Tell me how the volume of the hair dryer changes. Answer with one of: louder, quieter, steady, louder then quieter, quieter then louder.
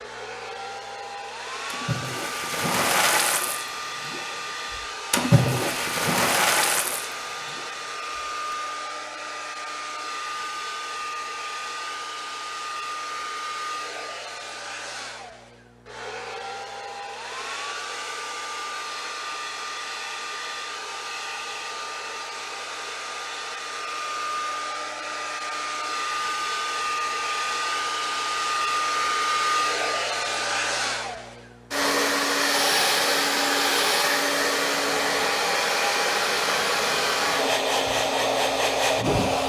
louder.